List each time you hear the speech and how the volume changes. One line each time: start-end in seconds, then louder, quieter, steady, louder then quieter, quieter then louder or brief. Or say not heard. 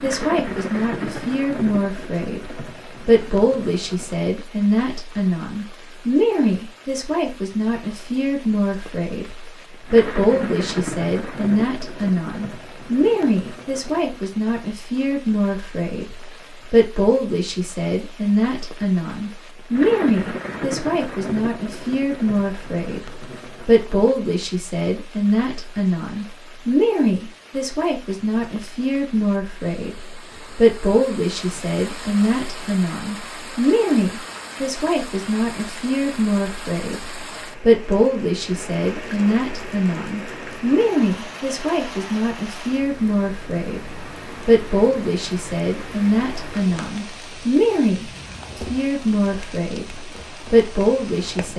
0.0-51.5 steady.